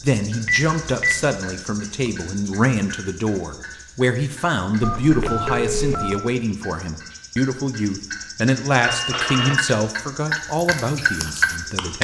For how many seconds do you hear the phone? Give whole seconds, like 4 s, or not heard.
3 s.